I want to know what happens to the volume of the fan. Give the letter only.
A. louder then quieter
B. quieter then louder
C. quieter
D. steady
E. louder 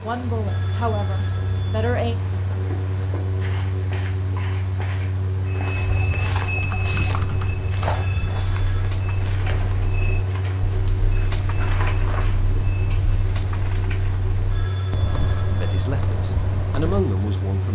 D.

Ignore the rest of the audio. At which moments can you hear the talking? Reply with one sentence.
You can hear the talking from 0.0 to 2.2 s and from 15.6 to 17.6 s.